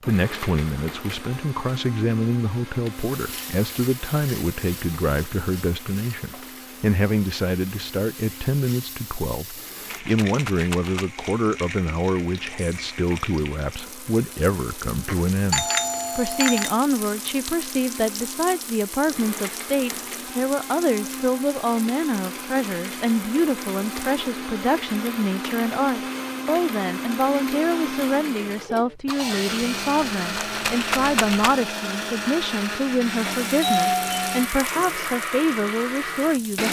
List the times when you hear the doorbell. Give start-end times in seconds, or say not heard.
15.1-16.7, 33.2-34.4.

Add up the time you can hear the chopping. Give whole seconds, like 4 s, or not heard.
not heard.